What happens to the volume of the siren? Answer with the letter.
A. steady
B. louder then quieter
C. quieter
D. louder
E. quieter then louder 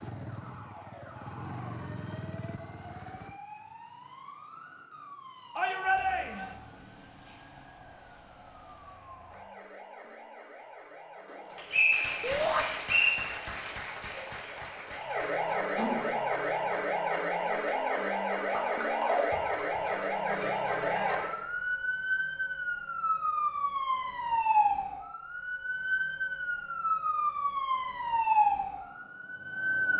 D.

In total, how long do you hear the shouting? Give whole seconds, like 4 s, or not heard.
2 s.